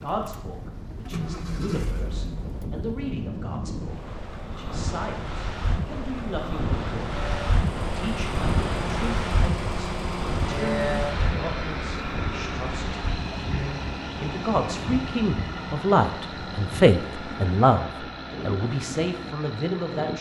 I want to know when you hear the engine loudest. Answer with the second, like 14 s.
11 s.